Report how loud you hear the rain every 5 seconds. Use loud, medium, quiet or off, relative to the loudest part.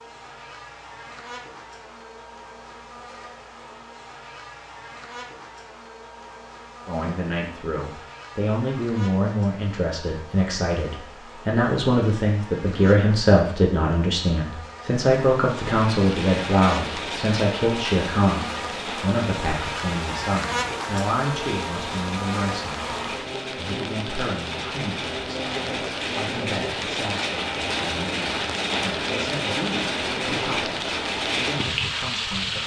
off, off, off, medium, medium, loud, loud.